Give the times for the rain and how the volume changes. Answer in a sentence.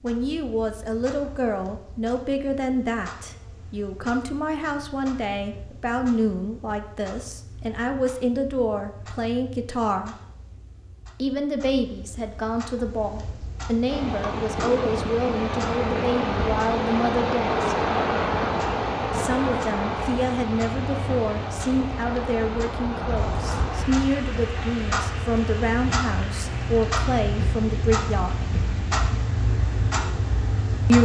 The rain can be heard from 13.8 to 30.9 s, getting quieter.